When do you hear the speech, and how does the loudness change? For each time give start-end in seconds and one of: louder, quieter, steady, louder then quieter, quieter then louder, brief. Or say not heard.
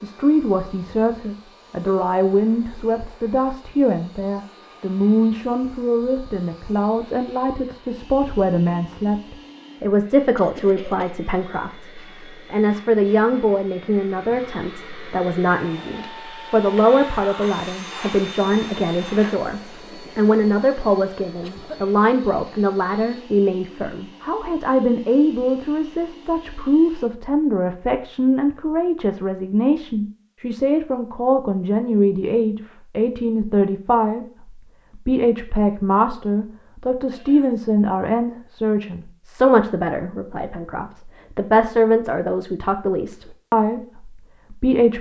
0.0-44.9 steady.